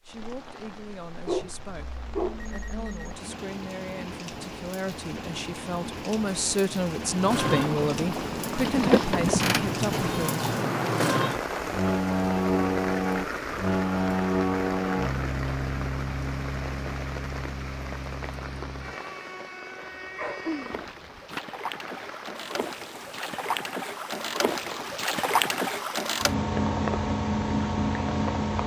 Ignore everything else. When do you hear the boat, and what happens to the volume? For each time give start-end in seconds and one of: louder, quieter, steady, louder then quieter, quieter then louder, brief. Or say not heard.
7.1-28.6 quieter then louder.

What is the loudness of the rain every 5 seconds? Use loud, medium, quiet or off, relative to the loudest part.
medium, loud, loud, medium, medium, medium.